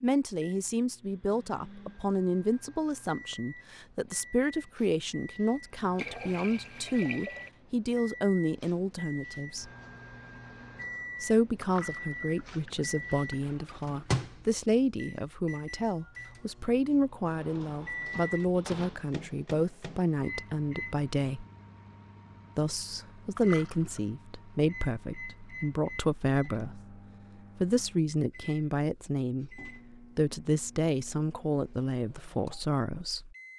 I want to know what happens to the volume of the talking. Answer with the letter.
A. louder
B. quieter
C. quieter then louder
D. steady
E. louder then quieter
D.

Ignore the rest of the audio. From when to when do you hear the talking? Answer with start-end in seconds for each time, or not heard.
0.0-9.7, 11.2-21.4, 22.6-33.4.